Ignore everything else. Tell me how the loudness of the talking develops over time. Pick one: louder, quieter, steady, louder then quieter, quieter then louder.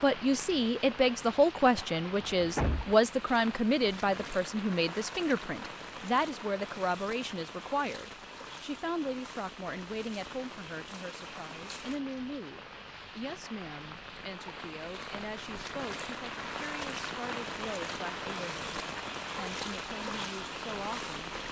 quieter.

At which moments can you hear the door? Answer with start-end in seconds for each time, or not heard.
1.8-3.0.